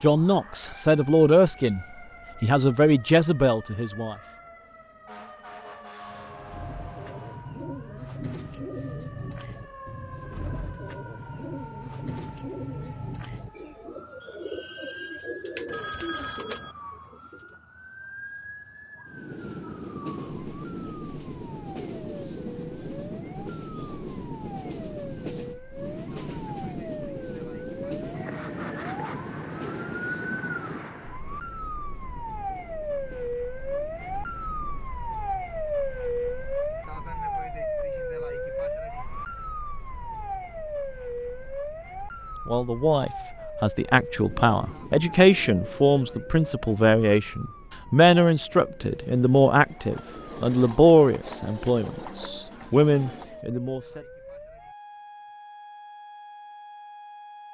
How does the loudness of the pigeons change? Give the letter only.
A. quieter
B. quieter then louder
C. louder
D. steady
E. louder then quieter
D.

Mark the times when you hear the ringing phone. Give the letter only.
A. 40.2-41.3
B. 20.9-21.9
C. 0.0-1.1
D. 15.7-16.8
D.